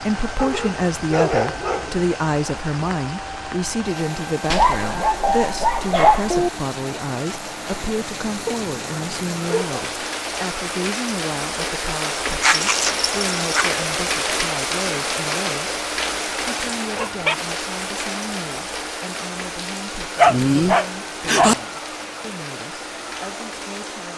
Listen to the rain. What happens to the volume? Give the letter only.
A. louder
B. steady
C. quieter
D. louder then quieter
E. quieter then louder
D.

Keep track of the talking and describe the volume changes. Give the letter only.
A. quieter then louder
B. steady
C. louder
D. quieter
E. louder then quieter
D.